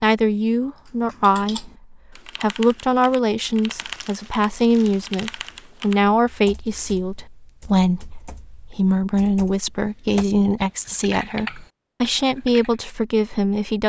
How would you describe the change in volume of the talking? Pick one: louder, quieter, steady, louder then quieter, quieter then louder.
steady.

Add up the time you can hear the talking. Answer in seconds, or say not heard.
14 s.